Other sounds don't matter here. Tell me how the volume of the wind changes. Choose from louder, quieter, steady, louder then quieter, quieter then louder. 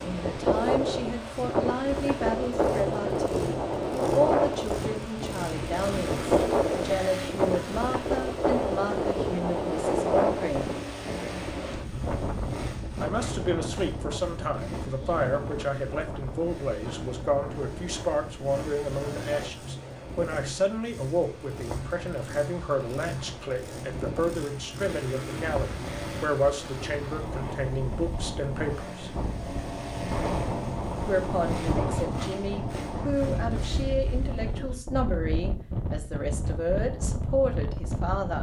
quieter then louder.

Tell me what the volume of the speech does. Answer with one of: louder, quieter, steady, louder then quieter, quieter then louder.
steady.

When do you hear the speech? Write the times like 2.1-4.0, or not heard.
0.0-10.8, 12.9-29.1, 31.1-38.3.